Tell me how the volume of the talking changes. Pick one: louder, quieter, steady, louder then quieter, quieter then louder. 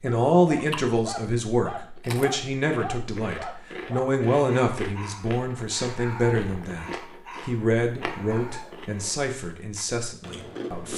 quieter.